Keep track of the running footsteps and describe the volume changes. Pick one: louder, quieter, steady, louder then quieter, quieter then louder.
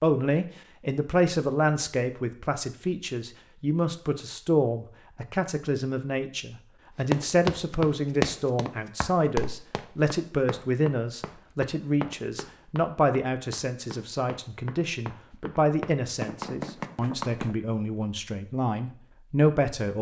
quieter then louder.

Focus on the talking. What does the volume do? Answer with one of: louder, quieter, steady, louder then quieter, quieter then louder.
steady.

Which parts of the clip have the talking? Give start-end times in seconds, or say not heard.
0.0-19.9.